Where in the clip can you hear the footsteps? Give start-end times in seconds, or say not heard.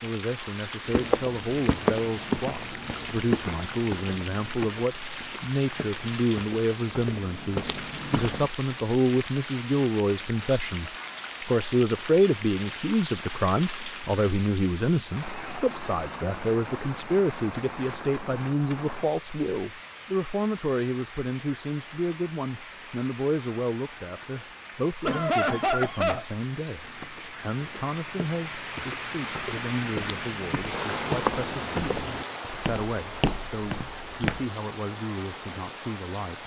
0.8-8.5, 26.8-34.5.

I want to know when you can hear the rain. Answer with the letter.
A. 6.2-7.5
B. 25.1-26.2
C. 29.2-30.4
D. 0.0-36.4
D.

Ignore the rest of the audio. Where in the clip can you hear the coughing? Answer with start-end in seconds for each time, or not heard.
25.1-26.2.